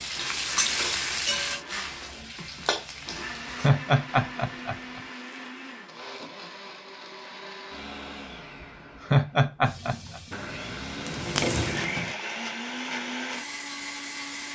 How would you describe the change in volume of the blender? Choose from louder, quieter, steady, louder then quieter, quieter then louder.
louder.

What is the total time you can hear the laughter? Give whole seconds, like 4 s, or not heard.
3 s.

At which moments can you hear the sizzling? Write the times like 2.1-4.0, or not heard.
0.0-3.7, 9.6-12.2.